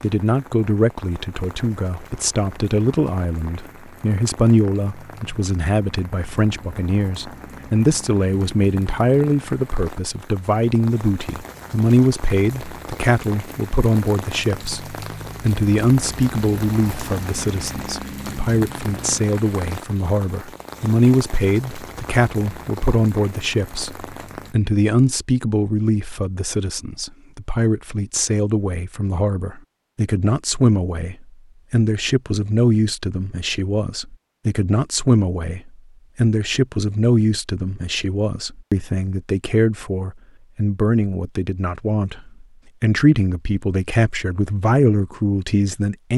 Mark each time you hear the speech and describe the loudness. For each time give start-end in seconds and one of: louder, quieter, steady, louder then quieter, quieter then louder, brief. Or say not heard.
0.0-46.1 steady.